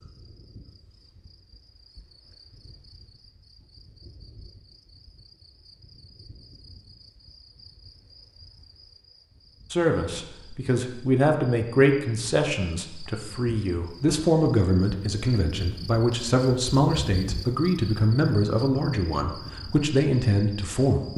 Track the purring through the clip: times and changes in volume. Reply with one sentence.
You can't hear the purring here.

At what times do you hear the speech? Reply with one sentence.
You can hear the speech from 9.7 to 21.1 s.